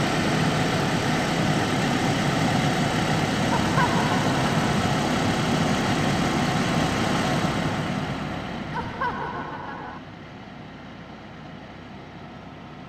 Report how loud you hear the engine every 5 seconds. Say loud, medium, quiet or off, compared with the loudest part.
loud, loud, quiet.